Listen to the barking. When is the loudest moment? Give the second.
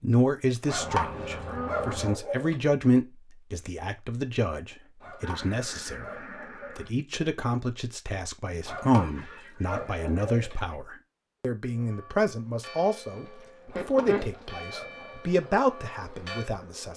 1 s.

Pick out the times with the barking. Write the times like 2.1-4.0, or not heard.
0.7-2.5, 5.0-6.9, 8.7-10.6, 13.7-15.1.